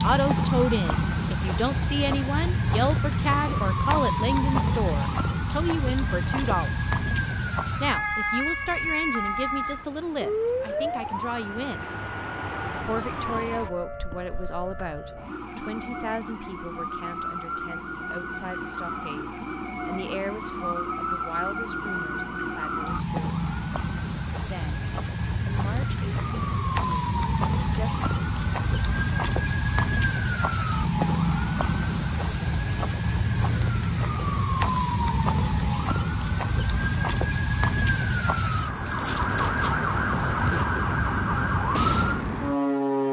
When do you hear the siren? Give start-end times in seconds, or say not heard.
0.0-43.0.